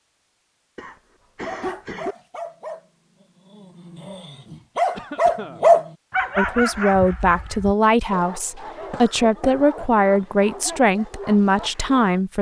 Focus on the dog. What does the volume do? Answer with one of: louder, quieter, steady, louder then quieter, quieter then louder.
louder then quieter.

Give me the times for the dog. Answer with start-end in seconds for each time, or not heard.
1.4-12.2.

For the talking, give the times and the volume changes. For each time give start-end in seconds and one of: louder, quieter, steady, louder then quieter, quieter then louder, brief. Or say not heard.
6.3-12.3 steady.